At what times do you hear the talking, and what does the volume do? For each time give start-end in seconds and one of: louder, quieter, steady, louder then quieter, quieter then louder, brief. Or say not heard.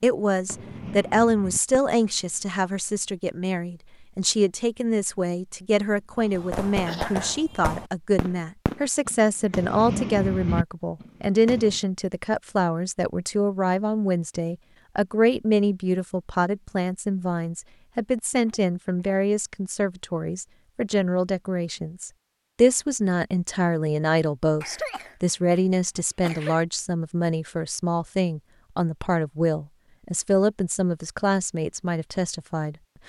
0.0-32.8 steady.